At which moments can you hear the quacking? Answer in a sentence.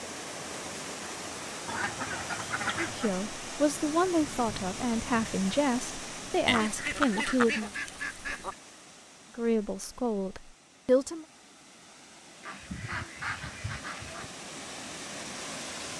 The quacking can be heard from 1.6 to 3.1 s, from 6.5 to 8.6 s and from 12.4 to 14.3 s.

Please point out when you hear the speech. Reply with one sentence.
The speech can be heard from 2.8 to 7.7 s and from 9.3 to 11.2 s.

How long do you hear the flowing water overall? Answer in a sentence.
You can hear the flowing water for 16 seconds altogether.